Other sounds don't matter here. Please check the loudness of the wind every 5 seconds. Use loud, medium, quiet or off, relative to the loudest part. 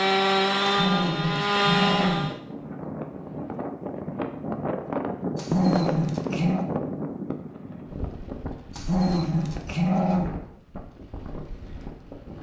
loud, loud, medium.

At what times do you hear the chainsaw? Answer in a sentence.
You can hear the chainsaw from 0.0 to 2.4 s.